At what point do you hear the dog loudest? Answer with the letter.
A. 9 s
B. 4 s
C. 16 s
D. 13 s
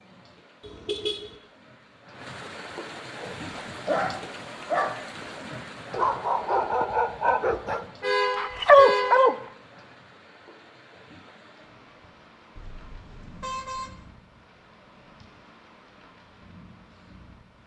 A.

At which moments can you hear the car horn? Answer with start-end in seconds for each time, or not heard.
0.6-1.4, 8.0-9.3, 12.6-14.0.